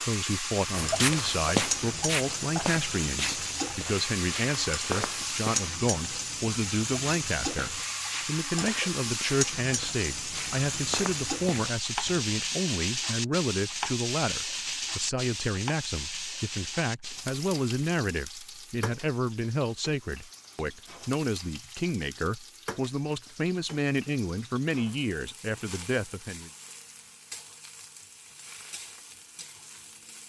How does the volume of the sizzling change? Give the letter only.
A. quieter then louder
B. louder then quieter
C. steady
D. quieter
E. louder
D.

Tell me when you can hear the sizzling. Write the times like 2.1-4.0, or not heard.
0.0-30.2.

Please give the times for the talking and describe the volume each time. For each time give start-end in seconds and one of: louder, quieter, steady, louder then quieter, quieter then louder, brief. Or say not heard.
0.0-26.5 steady.